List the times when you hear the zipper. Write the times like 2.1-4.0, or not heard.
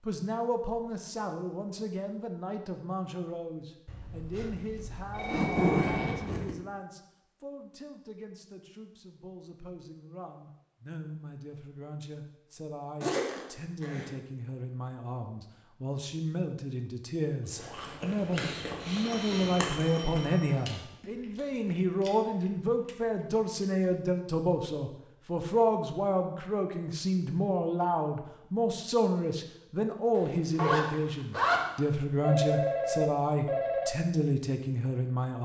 4.5-6.5, 13.0-14.1, 30.1-31.6.